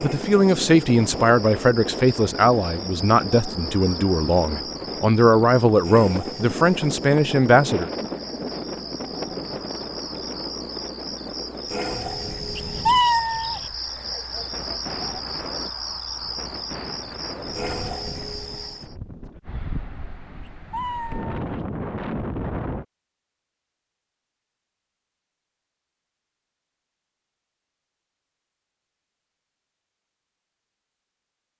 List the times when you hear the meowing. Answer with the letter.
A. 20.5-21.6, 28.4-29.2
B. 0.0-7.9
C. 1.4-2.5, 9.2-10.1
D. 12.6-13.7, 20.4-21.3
D.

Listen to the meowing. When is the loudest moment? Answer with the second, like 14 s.
13 s.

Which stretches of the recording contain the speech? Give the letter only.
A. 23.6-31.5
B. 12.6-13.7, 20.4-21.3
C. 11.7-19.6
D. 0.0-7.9
D.